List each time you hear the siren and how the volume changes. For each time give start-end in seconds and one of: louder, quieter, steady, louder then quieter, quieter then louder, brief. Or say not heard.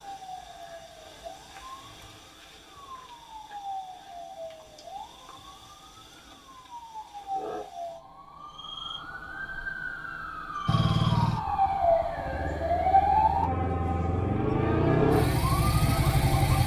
0.0-16.6 louder.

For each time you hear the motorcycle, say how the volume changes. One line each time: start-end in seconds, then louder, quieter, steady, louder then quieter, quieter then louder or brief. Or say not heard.
10.7-16.6 quieter then louder.